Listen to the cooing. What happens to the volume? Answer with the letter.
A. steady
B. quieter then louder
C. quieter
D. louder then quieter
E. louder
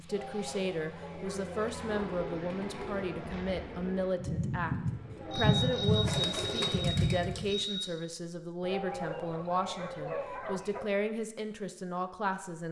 E.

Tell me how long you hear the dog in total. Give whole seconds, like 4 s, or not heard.
6 s.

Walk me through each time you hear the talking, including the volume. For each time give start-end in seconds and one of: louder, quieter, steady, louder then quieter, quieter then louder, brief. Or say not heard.
0.0-12.6 steady.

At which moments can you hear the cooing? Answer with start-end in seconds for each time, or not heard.
0.9-7.7.